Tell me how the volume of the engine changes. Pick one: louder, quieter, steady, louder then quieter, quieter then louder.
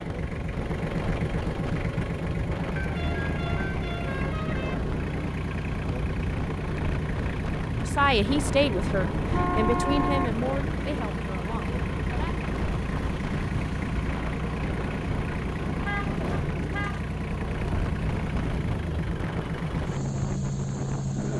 steady.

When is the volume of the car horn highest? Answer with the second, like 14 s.
10 s.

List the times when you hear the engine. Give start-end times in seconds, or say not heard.
0.0-21.3.